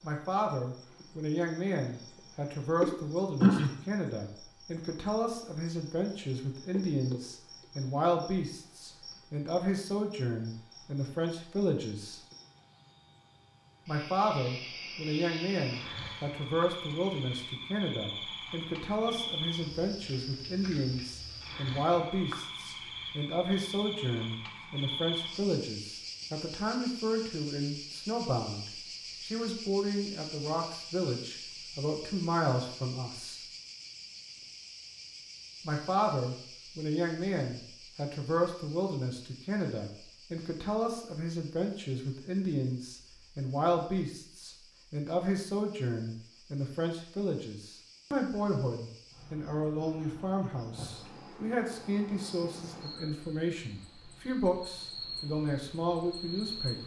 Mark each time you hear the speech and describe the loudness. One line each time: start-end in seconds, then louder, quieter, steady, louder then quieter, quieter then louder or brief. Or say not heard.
0.0-12.2 steady
13.8-33.4 steady
35.6-56.8 steady.